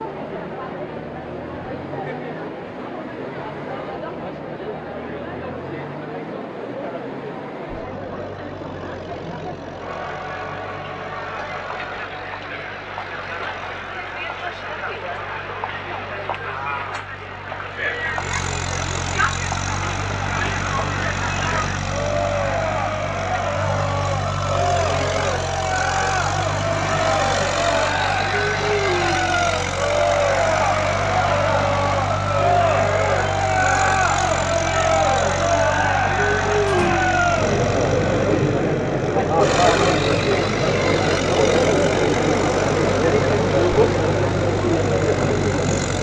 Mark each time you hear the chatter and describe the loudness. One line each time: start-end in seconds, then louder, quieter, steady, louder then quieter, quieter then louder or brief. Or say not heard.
0.0-45.9 louder.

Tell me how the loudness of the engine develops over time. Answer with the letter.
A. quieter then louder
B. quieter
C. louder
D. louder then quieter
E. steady
C.